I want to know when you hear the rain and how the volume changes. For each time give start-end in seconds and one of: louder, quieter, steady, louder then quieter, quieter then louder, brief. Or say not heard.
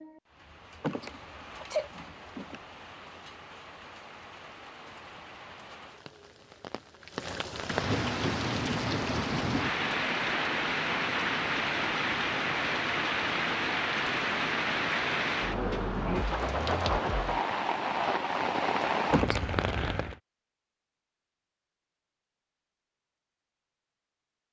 0.0-20.2 louder.